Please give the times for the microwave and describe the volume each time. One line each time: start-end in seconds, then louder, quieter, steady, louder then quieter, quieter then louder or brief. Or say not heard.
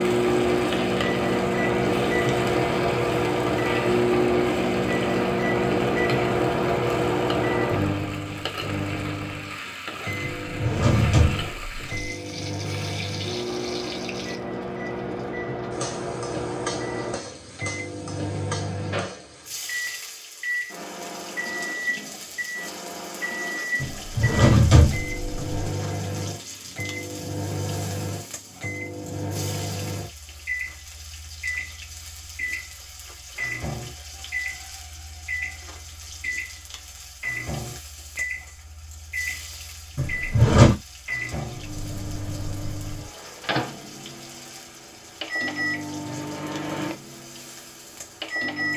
0.0-48.7 quieter.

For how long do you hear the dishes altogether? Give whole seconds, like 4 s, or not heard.
not heard.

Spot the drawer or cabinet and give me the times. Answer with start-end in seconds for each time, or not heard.
10.2-12.1, 23.8-25.4, 40.0-40.8.